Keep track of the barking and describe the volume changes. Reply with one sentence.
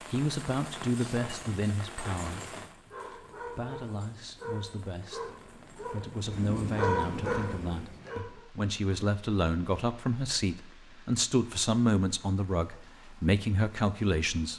The loudness of the barking goes up.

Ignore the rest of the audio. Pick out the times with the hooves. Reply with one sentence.
The hooves can't be heard in this clip.